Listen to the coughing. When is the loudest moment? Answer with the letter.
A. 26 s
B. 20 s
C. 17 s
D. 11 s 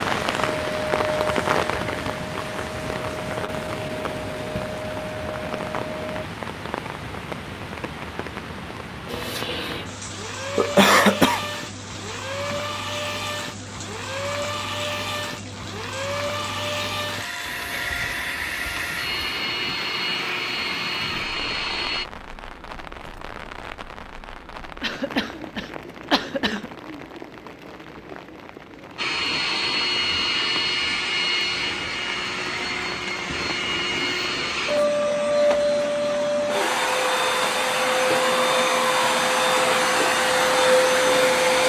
D.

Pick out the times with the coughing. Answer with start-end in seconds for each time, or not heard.
10.6-11.4, 24.8-26.7.